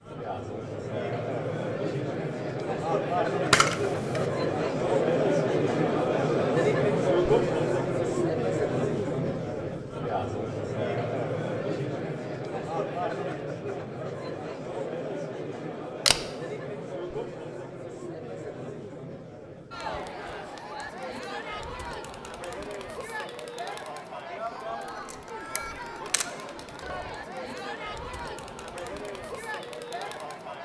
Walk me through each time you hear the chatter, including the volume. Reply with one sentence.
You can hear the chatter from 0.0 to 30.6 s, getting quieter.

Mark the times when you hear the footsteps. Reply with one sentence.
The footsteps can't be heard in this clip.